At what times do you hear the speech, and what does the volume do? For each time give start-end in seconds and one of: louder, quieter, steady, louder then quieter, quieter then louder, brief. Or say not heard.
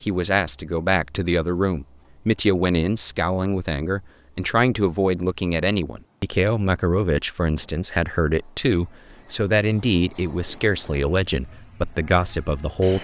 0.0-12.9 steady.